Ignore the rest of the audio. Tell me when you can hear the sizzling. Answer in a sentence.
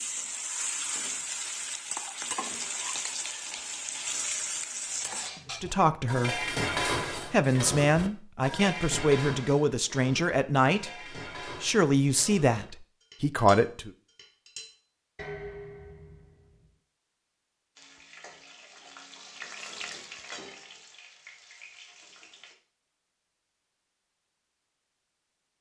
The sizzling can be heard from 0.0 to 5.3 s and from 17.8 to 22.6 s.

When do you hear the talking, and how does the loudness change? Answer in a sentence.
The talking can be heard briefly from 5.5 to 6.5 s; and from 7.2 to 13.9 s, at a steady volume.